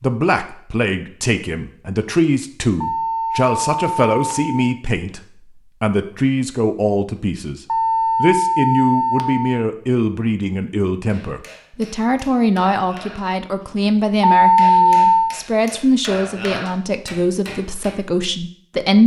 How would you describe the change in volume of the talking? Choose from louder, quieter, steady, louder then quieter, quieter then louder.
steady.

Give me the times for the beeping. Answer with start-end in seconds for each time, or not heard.
2.8-4.6, 7.7-9.6, 14.2-15.3.